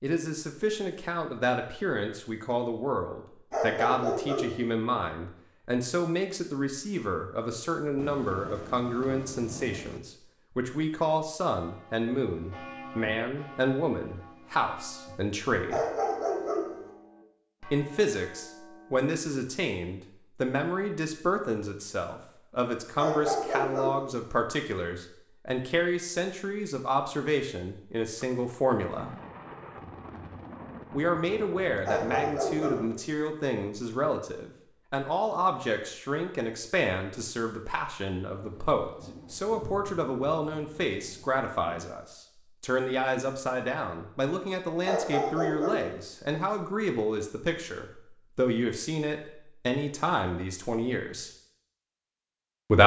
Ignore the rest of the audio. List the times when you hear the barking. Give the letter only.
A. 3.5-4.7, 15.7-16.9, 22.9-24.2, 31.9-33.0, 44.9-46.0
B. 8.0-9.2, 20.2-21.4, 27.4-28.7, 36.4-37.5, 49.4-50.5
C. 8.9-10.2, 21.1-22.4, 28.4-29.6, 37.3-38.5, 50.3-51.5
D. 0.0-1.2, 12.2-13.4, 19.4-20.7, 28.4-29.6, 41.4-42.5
A.